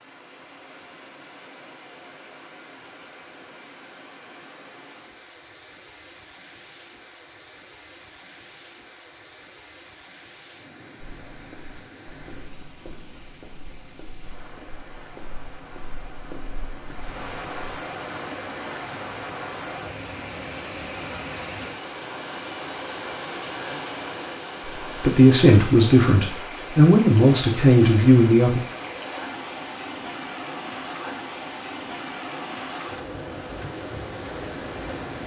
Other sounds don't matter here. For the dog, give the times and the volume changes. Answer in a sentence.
The dog can't be heard in this clip.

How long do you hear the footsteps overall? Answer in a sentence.
The footsteps can be heard for 7 seconds in total.